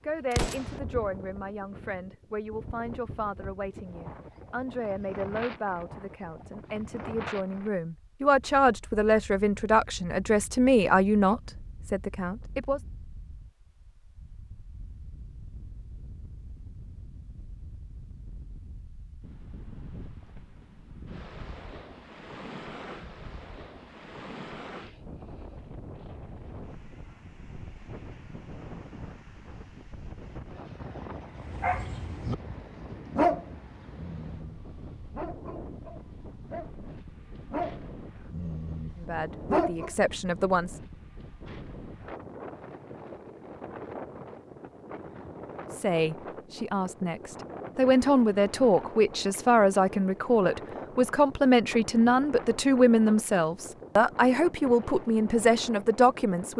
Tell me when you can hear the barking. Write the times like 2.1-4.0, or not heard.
31.4-39.9.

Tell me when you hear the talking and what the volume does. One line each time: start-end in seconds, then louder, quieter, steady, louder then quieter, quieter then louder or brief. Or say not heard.
0.0-12.8 louder
39.0-40.8 brief
45.8-56.5 steady.